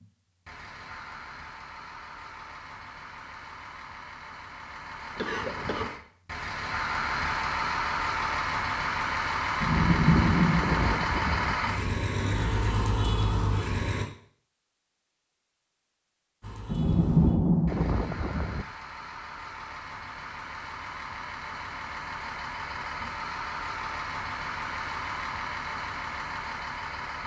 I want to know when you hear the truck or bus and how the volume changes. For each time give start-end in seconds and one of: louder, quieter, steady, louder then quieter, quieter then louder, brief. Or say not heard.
0.0-14.1 louder
16.4-27.2 louder.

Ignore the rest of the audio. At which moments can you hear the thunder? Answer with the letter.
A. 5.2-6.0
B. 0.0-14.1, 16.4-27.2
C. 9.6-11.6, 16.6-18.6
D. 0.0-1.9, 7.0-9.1
C.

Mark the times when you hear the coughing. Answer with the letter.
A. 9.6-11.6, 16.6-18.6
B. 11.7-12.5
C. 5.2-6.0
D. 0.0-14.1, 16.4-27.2
C.